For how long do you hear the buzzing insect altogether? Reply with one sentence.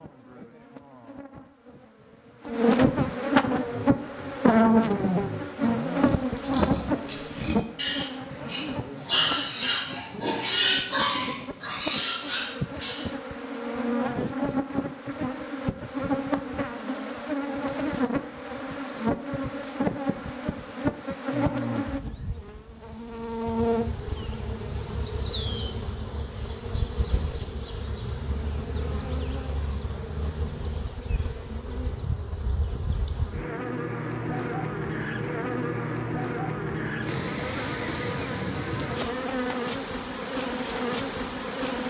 You can hear the buzzing insect for 42 seconds altogether.